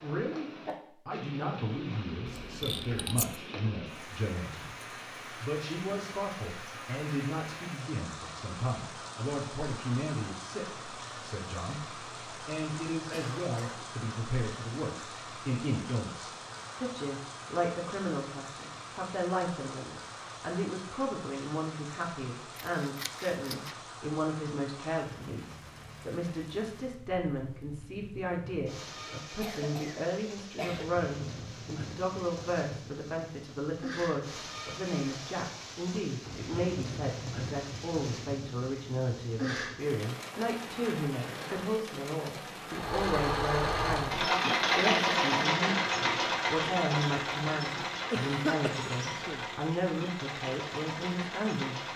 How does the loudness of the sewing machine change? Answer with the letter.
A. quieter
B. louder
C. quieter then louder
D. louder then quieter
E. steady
A.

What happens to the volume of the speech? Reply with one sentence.
The volume of the speech stays about the same.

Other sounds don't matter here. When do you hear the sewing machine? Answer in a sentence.
The sewing machine can be heard from 42.7 to 51.9 s.